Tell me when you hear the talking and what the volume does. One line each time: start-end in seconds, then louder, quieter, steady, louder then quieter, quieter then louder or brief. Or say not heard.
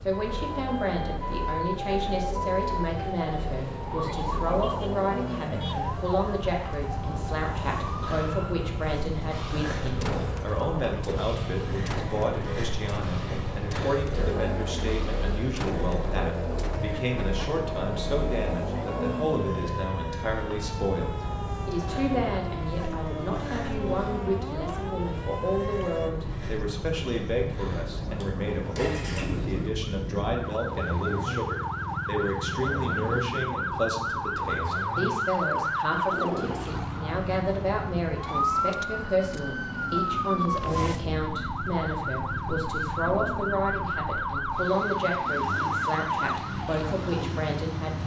0.1-48.0 steady.